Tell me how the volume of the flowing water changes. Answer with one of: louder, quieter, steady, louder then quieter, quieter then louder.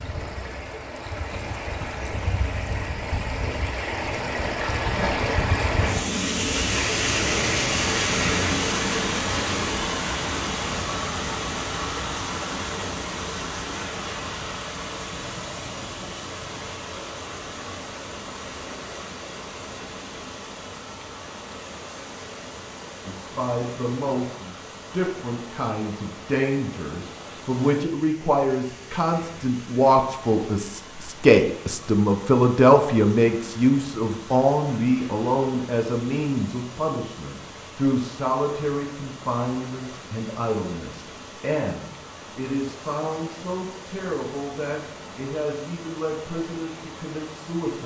quieter.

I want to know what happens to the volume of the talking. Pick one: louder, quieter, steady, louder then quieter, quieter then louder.
louder then quieter.